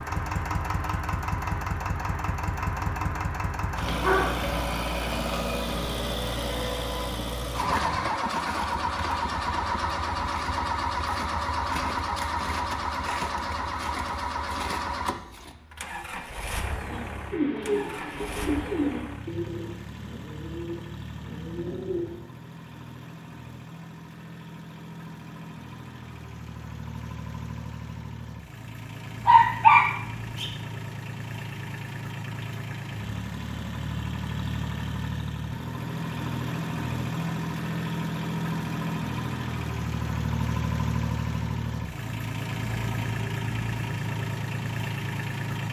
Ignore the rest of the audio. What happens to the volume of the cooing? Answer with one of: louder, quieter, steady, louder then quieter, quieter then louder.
quieter.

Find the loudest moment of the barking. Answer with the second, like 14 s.
30 s.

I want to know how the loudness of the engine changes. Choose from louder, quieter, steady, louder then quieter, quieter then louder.
quieter then louder.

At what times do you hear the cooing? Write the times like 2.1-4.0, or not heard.
16.9-22.2.